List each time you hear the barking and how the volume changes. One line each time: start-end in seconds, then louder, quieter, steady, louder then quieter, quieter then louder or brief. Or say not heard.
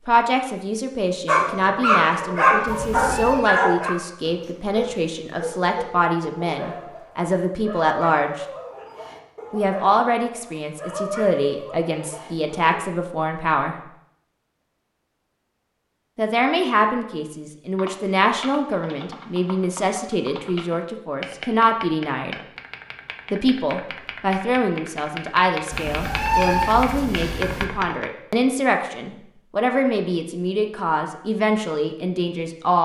1.2-12.8 quieter.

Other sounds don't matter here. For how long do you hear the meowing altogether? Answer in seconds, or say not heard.
3 s.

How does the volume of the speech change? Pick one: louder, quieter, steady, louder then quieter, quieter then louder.
steady.